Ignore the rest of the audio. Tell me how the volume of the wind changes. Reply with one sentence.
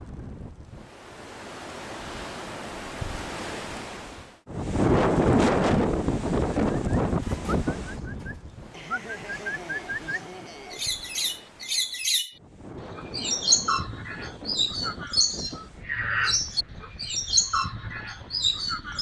The loudness of the wind goes up, then down.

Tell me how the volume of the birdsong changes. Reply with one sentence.
The volume of the birdsong goes up.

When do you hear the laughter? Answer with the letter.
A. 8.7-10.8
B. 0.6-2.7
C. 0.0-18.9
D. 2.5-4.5
A.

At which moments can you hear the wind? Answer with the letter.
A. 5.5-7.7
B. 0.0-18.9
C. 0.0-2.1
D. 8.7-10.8
B.